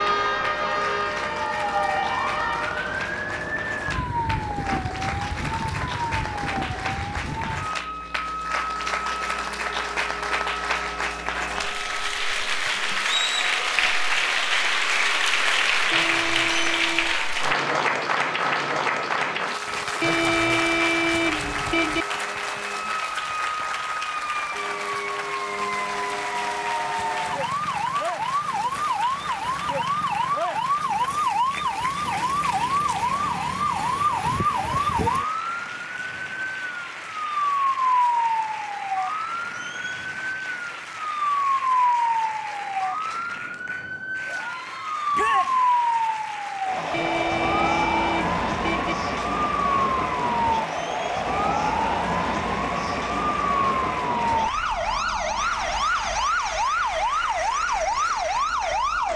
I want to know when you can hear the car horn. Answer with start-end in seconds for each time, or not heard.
15.9-17.2, 20.0-22.1, 46.9-49.0.